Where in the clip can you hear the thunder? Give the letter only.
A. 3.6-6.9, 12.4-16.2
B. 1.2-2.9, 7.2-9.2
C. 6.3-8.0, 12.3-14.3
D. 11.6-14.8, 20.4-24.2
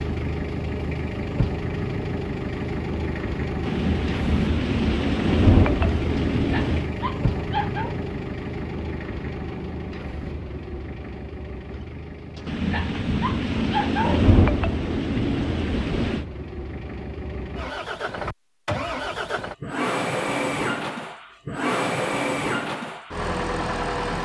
A.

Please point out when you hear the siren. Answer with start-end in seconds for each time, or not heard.
not heard.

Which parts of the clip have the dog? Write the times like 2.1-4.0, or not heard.
6.3-8.0, 12.3-14.3.